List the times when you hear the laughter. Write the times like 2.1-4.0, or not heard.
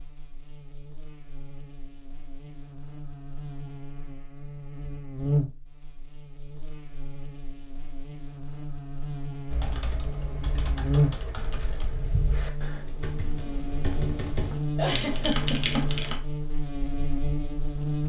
14.8-15.9.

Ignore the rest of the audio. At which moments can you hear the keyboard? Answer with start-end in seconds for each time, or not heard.
9.5-16.2.